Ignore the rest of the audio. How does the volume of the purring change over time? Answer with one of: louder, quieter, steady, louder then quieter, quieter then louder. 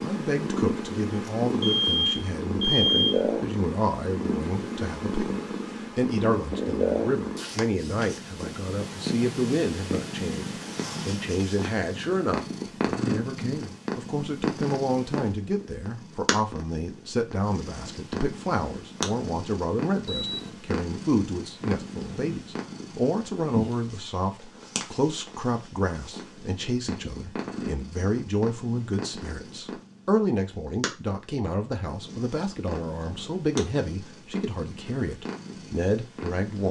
quieter.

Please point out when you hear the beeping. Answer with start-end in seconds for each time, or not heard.
1.2-3.2, 20.1-20.5.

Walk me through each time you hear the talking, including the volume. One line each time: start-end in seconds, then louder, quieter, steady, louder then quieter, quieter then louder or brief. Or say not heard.
0.0-36.6 steady.